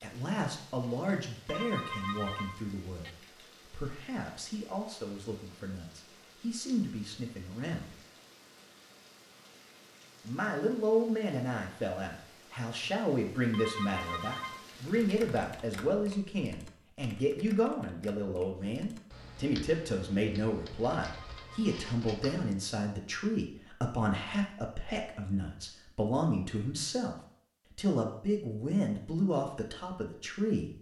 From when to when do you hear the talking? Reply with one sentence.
The talking can be heard from 0.0 to 8.0 s, from 10.2 to 27.1 s and from 27.8 to 30.7 s.